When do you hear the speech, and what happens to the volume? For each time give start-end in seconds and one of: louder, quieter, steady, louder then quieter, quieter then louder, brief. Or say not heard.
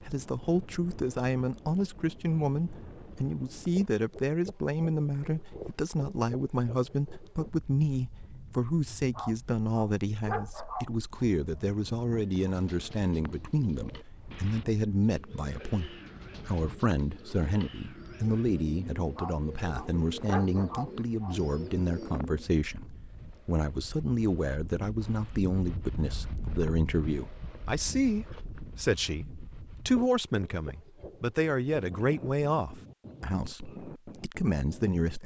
0.0-35.2 steady.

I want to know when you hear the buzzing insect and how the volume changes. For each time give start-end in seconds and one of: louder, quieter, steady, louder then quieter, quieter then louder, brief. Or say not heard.
not heard.